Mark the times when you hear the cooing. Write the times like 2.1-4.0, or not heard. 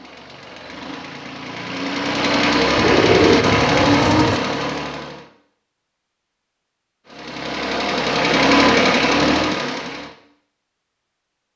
2.8-4.4.